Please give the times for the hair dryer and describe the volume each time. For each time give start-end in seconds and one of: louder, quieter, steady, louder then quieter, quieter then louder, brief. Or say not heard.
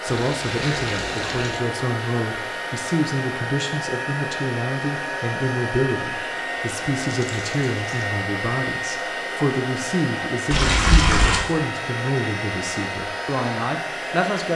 0.0-14.5 steady.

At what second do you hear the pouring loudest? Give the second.
11 s.